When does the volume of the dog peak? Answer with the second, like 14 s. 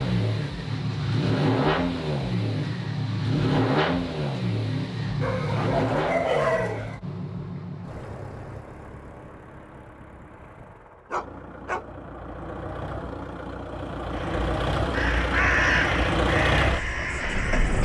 6 s.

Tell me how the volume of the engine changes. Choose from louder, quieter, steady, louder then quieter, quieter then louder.
quieter then louder.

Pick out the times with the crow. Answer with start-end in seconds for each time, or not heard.
14.1-17.8.